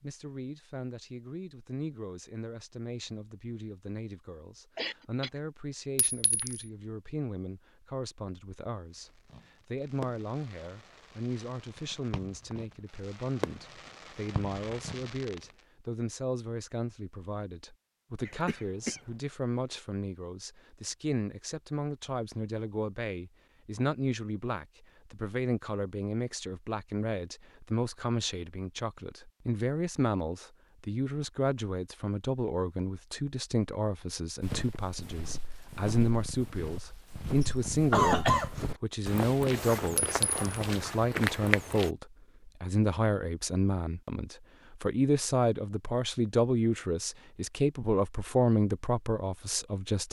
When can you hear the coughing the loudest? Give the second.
38 s.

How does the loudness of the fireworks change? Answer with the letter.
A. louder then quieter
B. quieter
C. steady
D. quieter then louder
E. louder
D.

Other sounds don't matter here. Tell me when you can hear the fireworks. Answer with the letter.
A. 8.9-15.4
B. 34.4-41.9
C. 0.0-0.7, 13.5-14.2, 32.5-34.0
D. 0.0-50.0
A.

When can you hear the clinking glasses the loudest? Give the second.
40 s.